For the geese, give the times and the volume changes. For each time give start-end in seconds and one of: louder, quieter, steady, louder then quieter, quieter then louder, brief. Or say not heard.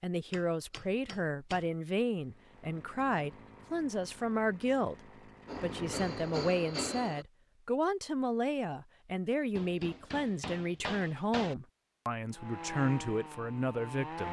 not heard.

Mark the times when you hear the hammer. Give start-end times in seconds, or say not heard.
0.3-1.6, 5.5-7.2, 9.6-11.6.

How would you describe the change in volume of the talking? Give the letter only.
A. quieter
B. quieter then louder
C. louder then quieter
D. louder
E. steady
E.